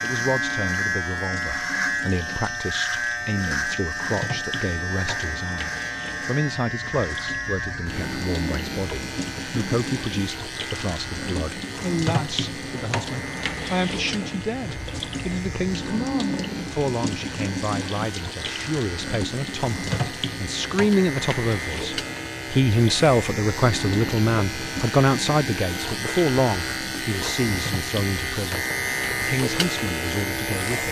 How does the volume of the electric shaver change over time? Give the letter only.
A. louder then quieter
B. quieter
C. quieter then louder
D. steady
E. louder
C.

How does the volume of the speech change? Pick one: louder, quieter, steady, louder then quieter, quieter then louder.
louder.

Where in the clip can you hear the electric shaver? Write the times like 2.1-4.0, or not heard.
0.0-30.8.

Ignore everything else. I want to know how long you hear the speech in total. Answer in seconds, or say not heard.
31 s.